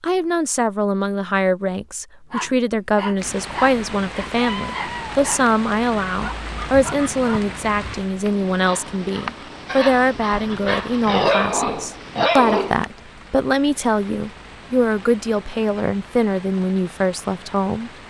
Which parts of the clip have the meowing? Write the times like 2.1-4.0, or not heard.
4.3-5.2.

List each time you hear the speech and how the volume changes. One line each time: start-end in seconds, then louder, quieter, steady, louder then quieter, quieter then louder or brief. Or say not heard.
0.0-17.9 steady.